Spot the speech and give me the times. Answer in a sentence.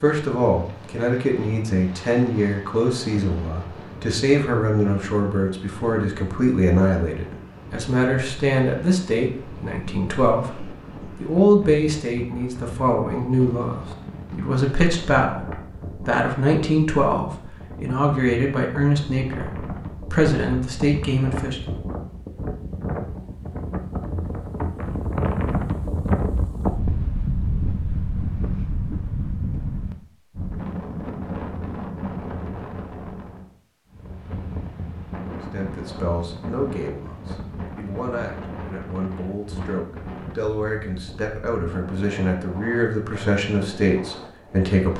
You can hear the speech from 0.0 to 21.8 s and from 35.5 to 44.9 s.